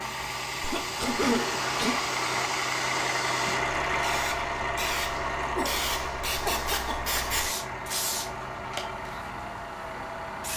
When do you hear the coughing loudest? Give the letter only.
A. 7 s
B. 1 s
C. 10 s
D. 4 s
B.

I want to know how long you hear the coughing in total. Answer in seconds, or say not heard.
3 s.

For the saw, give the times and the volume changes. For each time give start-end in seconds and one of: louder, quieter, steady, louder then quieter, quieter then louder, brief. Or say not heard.
not heard.